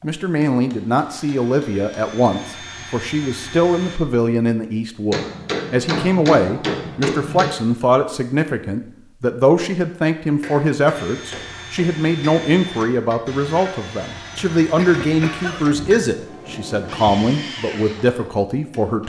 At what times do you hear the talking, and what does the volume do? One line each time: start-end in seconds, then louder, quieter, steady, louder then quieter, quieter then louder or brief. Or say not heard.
0.0-19.0 steady.